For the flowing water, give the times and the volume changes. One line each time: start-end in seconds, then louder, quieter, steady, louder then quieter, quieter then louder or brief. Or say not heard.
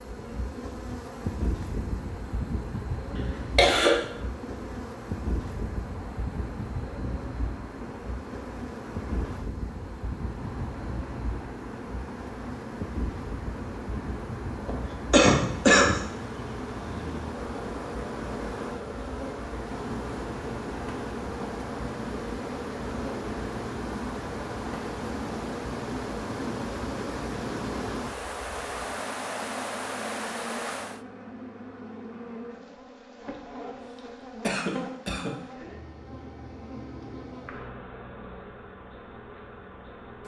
0.0-31.1 louder.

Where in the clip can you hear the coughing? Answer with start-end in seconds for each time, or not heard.
3.1-4.0, 14.7-16.1, 34.4-35.3.